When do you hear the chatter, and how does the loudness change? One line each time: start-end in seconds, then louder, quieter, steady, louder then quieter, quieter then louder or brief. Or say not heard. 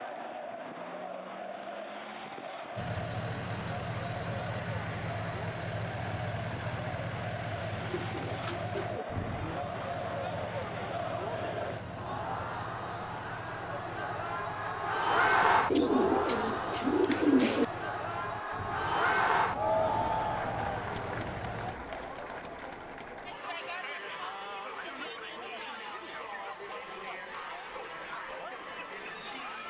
0.0-29.6 louder then quieter.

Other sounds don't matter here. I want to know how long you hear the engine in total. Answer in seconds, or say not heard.
19 s.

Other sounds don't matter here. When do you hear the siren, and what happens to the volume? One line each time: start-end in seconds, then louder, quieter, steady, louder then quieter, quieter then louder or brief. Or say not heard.
not heard.